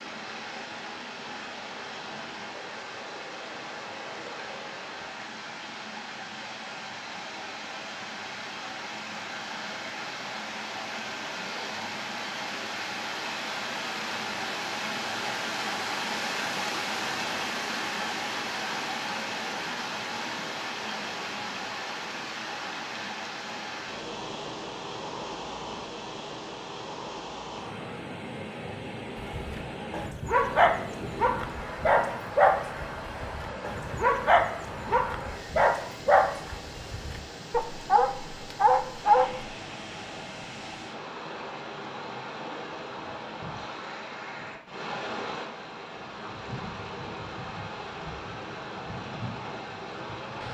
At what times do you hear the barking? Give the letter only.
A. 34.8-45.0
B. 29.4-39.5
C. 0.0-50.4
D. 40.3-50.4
B.